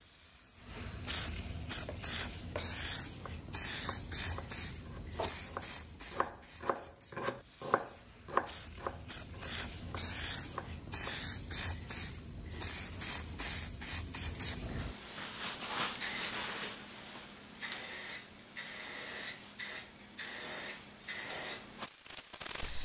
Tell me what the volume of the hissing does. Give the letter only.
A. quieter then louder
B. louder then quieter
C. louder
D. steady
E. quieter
A.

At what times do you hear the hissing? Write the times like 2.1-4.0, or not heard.
0.0-22.7.